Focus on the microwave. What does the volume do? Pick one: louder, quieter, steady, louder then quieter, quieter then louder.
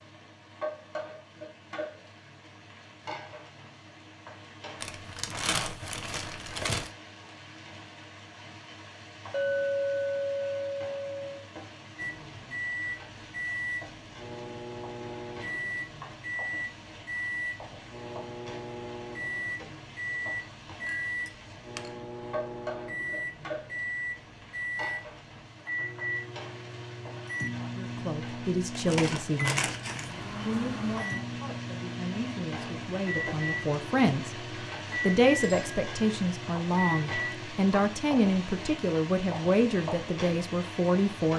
steady.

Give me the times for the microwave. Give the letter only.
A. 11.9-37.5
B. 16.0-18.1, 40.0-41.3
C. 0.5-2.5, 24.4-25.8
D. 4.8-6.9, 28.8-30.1
A.